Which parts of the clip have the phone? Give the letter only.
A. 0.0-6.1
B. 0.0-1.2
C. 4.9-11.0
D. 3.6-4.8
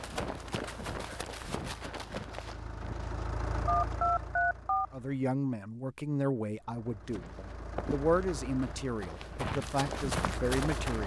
D.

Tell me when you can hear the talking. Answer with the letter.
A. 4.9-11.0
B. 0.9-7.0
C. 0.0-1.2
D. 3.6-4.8
A.